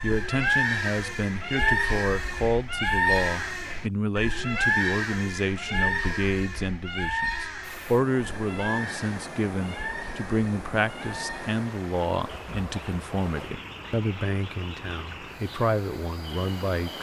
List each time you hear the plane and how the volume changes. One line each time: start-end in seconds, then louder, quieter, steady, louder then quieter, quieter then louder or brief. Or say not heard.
not heard.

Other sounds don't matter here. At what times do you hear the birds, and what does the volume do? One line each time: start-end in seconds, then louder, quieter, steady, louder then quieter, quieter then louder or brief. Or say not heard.
0.0-16.9 quieter.